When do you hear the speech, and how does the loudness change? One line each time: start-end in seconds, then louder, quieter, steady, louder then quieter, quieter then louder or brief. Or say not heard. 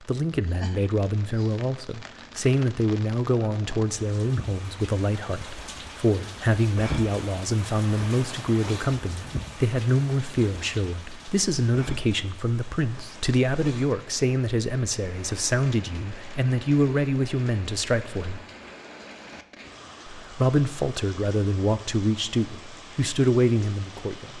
0.1-18.4 steady
20.1-24.3 quieter then louder.